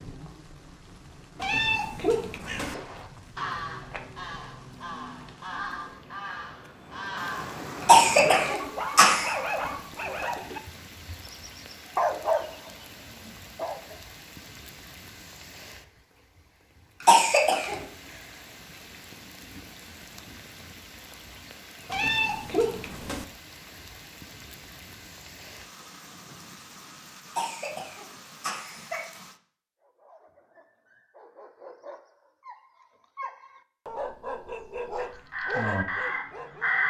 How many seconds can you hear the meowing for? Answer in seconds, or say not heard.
3 s.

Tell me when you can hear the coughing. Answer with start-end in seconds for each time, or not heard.
7.8-9.3, 17.0-17.8, 27.4-29.1.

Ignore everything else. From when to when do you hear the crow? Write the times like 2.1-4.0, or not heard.
2.4-7.7, 35.0-36.8.